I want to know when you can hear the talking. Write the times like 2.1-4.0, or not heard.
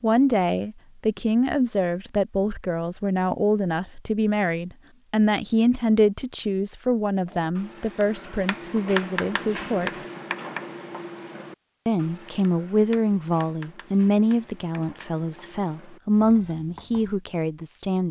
0.0-9.9, 11.8-18.0.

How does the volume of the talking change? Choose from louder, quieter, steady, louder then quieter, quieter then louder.
steady.